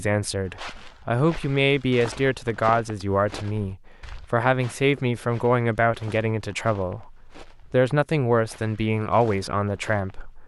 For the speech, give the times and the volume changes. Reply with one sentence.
You can hear the speech from 0.0 to 10.4 s, at a steady volume.